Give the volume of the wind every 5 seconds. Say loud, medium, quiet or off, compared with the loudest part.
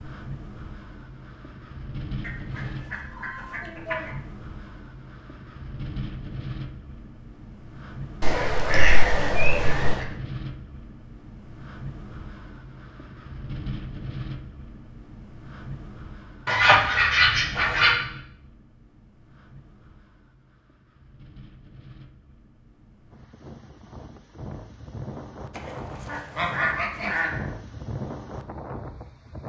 loud, loud, loud, medium, medium, loud.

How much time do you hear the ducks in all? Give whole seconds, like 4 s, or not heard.
7 s.